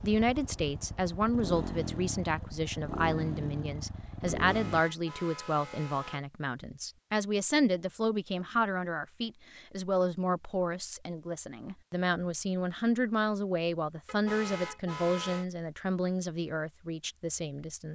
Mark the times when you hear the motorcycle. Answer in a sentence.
The motorcycle can be heard from 0.0 to 4.8 s.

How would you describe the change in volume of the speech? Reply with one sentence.
The volume of the speech stays about the same.